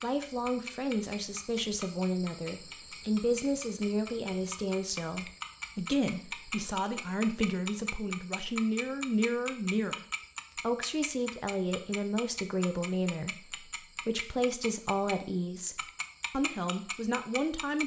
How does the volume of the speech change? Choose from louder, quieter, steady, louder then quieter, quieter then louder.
steady.